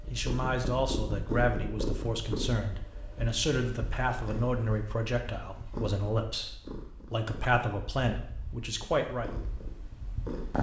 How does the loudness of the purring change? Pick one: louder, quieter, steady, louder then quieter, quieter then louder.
quieter.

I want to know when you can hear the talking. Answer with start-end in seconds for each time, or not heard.
0.1-9.3.